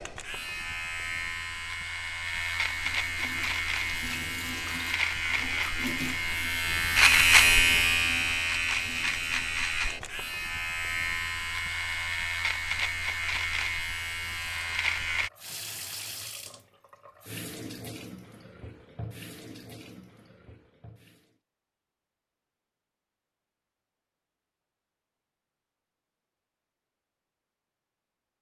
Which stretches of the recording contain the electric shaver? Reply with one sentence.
You can hear the electric shaver from 0.0 to 15.3 s.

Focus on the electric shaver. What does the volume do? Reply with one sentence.
The volume of the electric shaver goes up, then down.